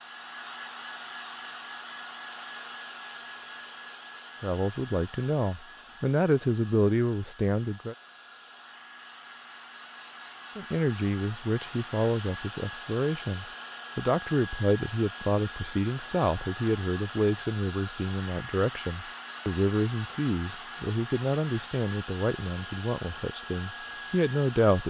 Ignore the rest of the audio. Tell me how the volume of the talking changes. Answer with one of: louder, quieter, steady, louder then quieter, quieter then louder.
steady.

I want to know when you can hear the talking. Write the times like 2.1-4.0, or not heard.
4.4-8.0, 10.6-24.8.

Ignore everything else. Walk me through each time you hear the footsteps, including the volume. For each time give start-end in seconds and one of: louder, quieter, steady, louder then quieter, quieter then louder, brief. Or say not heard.
not heard.